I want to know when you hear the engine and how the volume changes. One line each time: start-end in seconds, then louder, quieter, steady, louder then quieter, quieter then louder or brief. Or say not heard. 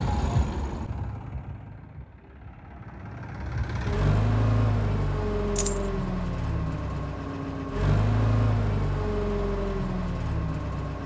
0.0-11.0 louder.